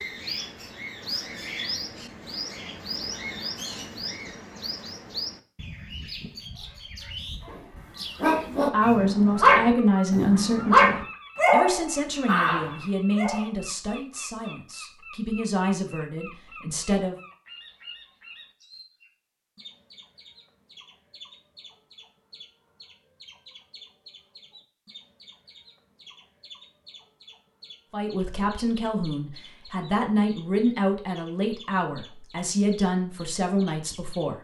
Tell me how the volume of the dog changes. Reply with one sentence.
The loudness of the dog goes up, then down.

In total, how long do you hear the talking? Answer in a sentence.
You can hear the talking for 15 seconds altogether.